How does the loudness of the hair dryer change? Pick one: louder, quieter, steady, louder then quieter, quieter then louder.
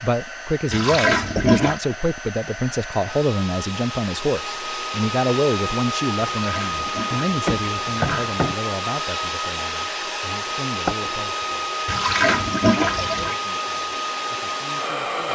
louder.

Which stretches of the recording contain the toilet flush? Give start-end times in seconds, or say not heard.
0.7-1.8, 6.2-8.3, 11.8-13.3.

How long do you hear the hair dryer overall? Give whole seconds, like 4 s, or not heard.
15 s.